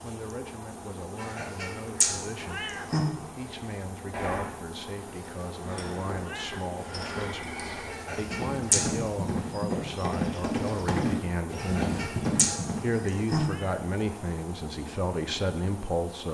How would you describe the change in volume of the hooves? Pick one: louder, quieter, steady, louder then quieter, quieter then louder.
louder.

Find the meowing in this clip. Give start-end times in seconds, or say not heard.
2.4-3.0, 6.2-6.7, 13.3-13.8.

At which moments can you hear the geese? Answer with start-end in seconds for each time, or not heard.
1.1-3.0, 7.8-8.9, 11.6-13.4.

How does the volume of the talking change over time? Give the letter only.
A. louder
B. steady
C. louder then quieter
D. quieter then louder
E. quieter
A.